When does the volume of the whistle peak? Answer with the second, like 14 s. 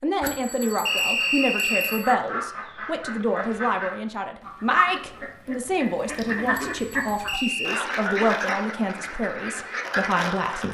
1 s.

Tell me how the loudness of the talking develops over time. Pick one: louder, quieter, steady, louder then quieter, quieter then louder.
steady.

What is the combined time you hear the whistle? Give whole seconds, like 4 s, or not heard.
2 s.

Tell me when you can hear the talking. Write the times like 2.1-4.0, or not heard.
0.0-10.7.